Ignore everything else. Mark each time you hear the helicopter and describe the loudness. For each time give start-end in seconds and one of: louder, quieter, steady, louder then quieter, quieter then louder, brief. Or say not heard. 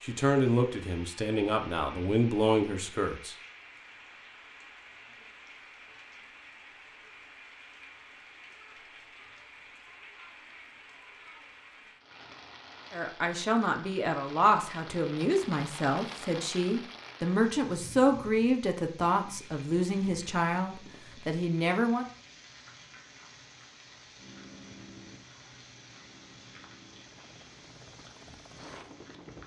24.1-29.4 quieter then louder.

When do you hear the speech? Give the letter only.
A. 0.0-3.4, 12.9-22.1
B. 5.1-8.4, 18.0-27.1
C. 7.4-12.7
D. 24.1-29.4
A.